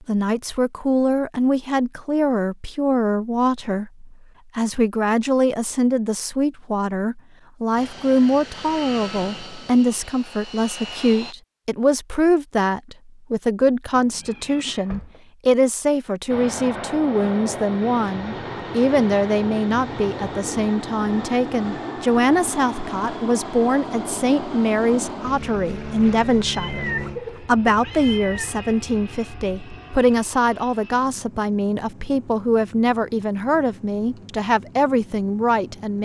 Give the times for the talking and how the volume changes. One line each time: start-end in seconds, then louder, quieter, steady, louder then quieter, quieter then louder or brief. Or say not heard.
0.1-36.0 steady.